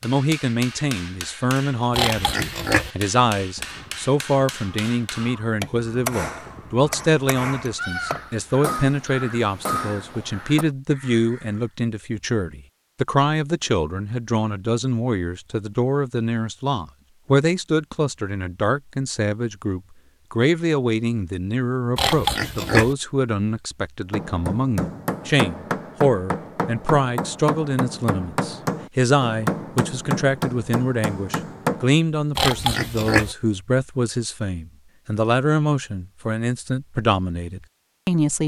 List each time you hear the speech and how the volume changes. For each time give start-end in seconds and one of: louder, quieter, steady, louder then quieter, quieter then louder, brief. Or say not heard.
0.0-38.4 steady.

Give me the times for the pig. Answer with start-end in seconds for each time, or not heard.
1.9-2.9, 21.9-22.9, 32.4-33.4.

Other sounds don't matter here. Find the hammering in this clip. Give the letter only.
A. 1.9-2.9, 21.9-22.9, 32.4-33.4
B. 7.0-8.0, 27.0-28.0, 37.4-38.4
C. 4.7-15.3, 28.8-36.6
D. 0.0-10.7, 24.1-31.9
D.